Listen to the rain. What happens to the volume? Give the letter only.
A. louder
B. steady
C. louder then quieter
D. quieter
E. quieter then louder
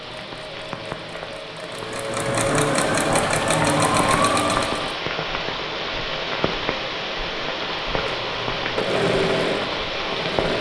A.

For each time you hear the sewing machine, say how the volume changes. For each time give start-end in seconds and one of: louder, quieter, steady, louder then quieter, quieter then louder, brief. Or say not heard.
0.0-5.0 louder
7.8-10.5 brief.